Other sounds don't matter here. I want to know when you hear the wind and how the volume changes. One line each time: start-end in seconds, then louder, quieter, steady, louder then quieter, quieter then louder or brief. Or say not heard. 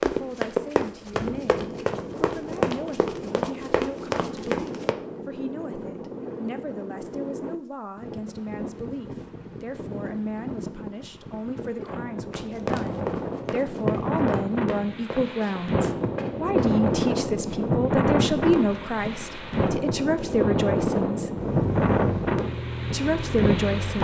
0.0-23.9 louder.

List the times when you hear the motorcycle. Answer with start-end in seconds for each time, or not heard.
21.4-23.9.